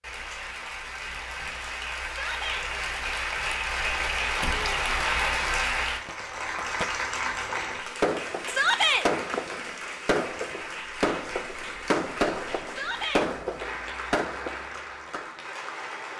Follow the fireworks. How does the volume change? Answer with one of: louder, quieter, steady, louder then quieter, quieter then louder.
louder.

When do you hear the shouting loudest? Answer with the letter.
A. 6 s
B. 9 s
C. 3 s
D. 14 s
B.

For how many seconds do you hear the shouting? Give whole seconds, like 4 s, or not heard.
2 s.